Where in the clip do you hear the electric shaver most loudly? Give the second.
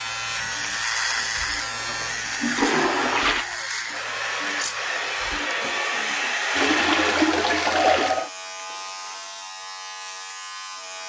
1 s.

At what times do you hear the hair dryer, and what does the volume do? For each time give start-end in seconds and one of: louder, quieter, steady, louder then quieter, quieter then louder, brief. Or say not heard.
0.0-8.3 louder.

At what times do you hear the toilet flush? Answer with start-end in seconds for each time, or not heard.
1.9-3.5, 6.5-8.2.